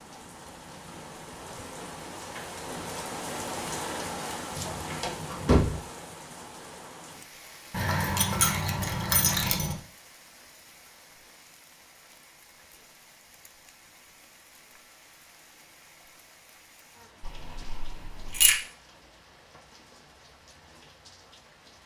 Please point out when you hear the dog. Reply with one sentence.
The dog can't be heard in this clip.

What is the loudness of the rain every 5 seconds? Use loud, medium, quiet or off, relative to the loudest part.
loud, medium, quiet, quiet, quiet.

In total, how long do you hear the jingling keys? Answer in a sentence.
The jingling keys can be heard for 5 seconds in total.